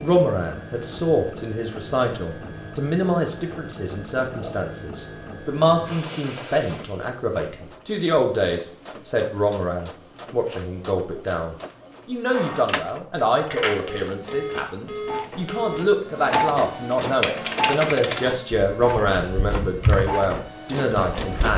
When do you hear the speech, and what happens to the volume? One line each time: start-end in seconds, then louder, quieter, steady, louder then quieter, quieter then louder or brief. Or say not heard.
0.0-21.5 steady.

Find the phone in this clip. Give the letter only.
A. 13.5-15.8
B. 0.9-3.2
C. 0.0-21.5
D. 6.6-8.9
A.